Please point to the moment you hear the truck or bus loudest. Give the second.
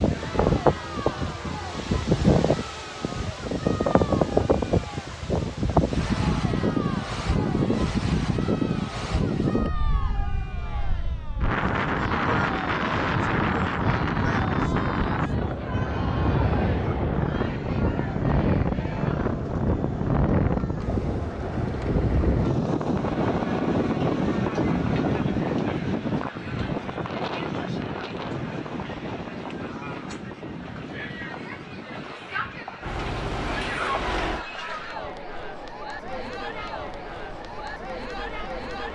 34 s.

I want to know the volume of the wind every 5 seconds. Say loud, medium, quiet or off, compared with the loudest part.
loud, loud, loud, loud, loud, medium, quiet, off.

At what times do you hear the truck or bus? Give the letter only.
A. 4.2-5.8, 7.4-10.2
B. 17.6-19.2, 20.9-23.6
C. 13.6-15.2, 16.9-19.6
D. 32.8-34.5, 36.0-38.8
D.